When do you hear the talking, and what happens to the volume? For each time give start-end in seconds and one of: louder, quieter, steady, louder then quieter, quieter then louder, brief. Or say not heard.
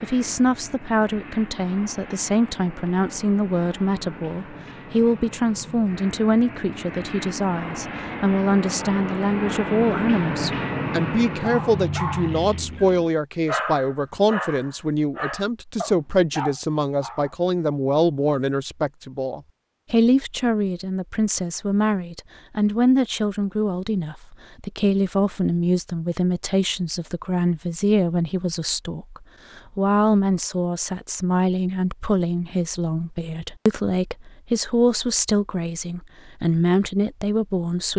0.0-37.9 steady.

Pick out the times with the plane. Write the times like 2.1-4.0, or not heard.
0.0-13.2.